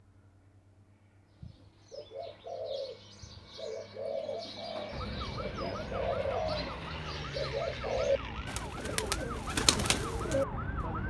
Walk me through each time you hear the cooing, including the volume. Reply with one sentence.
You can hear the cooing from 1.4 to 10.4 s, getting louder.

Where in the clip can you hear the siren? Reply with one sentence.
The siren can be heard from 4.9 to 11.0 s.